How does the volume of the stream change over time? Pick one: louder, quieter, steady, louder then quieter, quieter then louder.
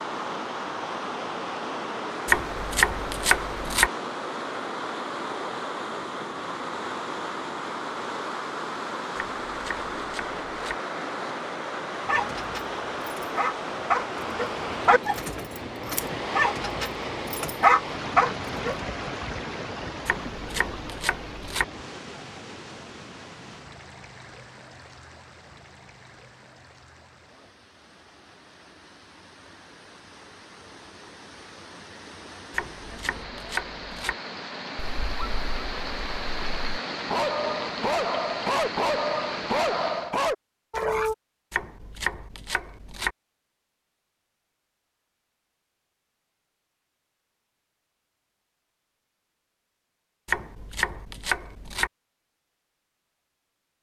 quieter then louder.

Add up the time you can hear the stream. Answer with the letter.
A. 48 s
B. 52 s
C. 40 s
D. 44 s
C.